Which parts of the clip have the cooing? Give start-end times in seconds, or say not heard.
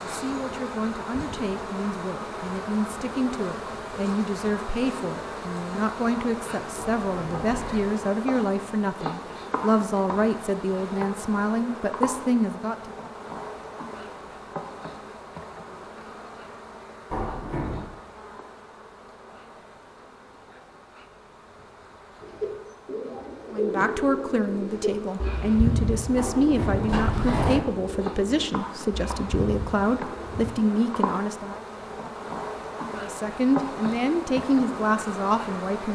22.2-30.5.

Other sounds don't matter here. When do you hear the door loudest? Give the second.
27 s.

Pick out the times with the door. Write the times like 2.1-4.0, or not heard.
6.8-7.9, 17.1-17.9, 26.1-27.6.